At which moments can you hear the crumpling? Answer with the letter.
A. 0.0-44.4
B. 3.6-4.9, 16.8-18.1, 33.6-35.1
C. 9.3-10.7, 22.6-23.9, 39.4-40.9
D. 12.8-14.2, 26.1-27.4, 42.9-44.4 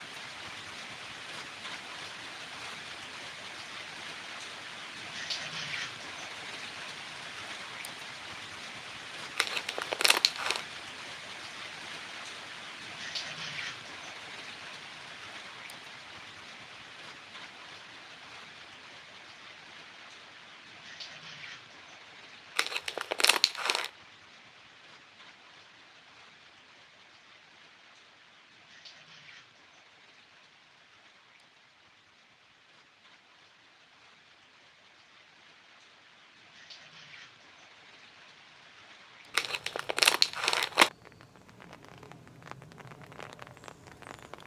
C.